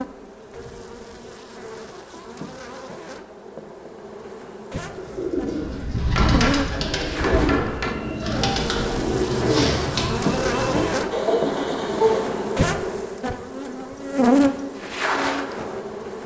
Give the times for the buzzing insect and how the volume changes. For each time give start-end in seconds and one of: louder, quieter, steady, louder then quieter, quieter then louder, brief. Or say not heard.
0.0-16.2 louder.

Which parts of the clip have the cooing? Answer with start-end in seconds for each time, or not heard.
4.9-12.6.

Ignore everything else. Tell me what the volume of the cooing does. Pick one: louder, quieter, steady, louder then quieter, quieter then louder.
steady.